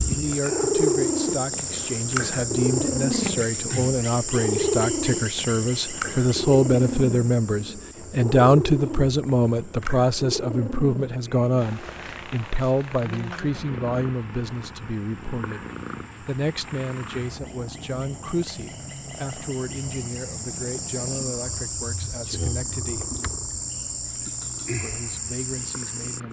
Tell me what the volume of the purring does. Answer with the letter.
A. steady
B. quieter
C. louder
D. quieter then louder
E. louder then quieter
B.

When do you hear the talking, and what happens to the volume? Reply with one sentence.
You can hear the talking from 0.1 to 23.1 s, getting louder then quieter; and briefly from 24.8 to 26.2 s.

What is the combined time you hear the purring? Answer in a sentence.
The purring can be heard for 26 seconds in total.